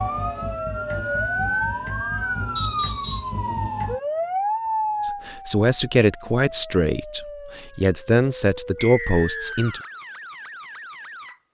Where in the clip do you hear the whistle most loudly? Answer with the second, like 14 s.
3 s.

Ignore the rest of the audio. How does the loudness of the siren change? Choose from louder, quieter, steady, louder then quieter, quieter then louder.
quieter.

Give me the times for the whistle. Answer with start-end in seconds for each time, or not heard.
2.5-3.3, 8.8-9.9.